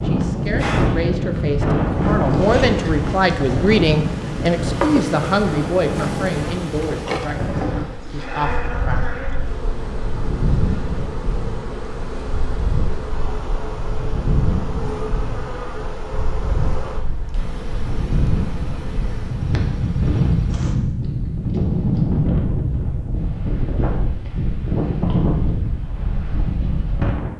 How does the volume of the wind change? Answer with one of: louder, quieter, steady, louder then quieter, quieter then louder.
quieter then louder.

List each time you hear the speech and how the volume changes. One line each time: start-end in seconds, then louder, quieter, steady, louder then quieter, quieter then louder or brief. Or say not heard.
0.0-9.2 louder then quieter.